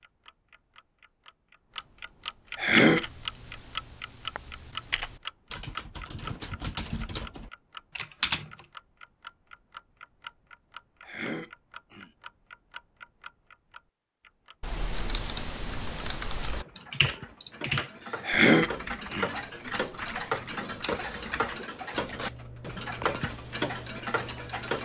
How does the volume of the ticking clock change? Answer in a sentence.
The volume of the ticking clock goes down, then up.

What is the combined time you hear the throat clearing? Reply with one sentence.
You can hear the throat clearing for 3 seconds altogether.